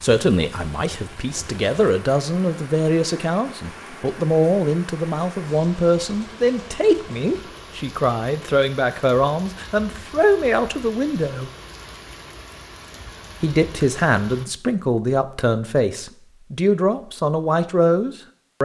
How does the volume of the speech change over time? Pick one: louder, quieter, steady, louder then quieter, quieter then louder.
steady.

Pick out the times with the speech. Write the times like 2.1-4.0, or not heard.
0.0-11.5, 13.4-18.6.